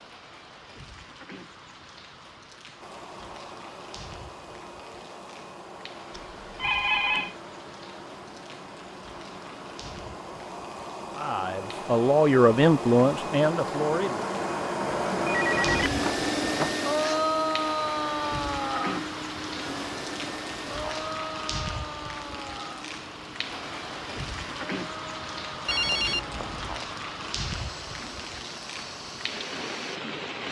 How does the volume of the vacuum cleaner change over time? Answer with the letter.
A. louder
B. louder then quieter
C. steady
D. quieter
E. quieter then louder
B.